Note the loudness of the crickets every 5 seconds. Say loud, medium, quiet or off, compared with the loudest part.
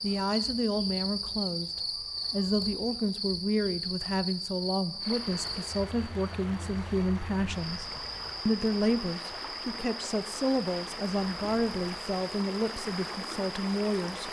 loud, medium, medium.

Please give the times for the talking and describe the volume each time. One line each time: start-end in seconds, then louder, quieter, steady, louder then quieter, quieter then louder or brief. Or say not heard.
0.0-14.2 steady.